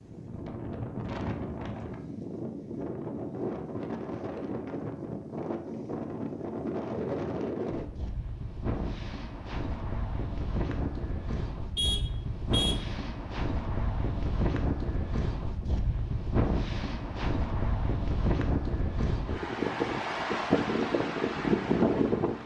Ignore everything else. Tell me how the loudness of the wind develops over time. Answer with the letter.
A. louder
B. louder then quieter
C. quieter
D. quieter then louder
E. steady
A.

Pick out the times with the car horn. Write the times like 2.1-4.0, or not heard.
11.8-12.8.